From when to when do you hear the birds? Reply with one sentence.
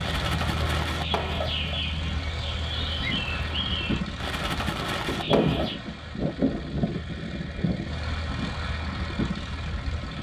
The birds can be heard from 0.0 to 5.8 s.